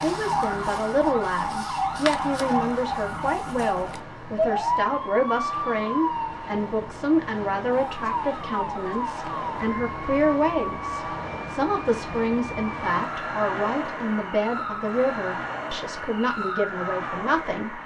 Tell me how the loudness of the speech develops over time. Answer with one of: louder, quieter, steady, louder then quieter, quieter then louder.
steady.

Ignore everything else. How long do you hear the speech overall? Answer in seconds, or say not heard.
18 s.